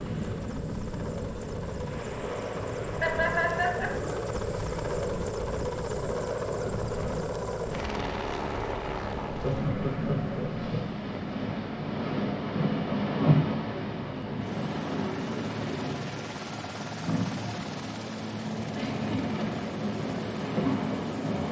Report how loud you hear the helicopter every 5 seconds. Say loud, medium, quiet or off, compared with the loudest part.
loud, loud, medium, medium, medium.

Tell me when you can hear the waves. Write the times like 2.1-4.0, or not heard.
0.0-21.4.